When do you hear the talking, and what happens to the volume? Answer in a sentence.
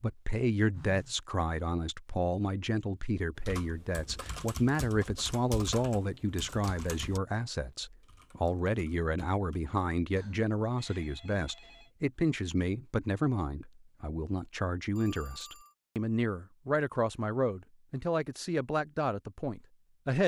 The talking can be heard from 0.0 to 20.2 s, at a steady volume.